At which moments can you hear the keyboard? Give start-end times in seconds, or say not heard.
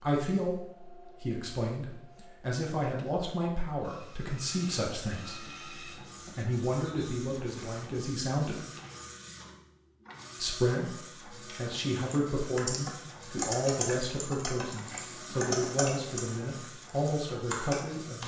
11.4-18.2.